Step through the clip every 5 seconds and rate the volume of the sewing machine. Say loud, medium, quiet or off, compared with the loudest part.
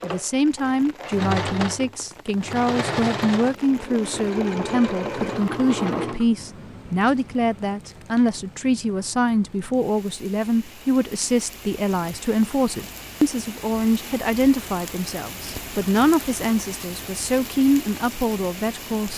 loud, loud, off, off.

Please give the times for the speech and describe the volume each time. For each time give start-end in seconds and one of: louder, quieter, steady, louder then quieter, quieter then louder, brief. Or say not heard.
0.0-19.1 steady.